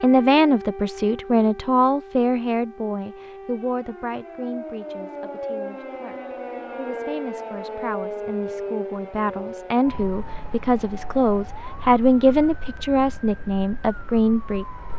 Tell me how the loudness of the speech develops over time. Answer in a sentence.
The loudness of the speech goes down, then up.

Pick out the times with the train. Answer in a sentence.
The train can't be heard in this clip.